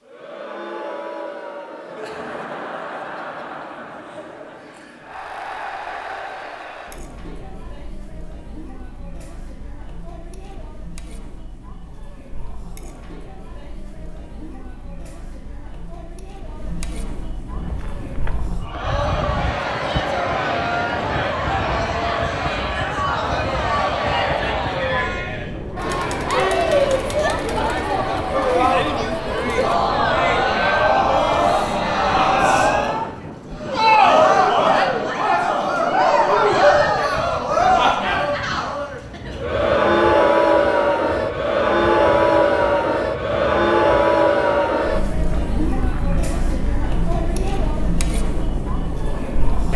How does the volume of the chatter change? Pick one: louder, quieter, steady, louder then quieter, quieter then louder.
louder.